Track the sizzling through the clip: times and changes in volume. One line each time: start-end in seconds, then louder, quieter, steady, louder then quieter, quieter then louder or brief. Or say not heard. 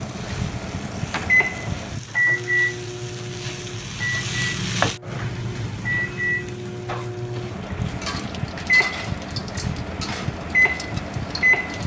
0.0-11.8 louder then quieter.